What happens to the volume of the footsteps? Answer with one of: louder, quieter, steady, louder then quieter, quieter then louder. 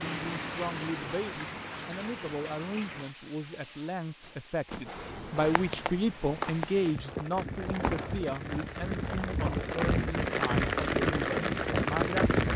louder then quieter.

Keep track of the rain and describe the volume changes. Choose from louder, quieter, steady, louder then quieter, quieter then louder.
quieter then louder.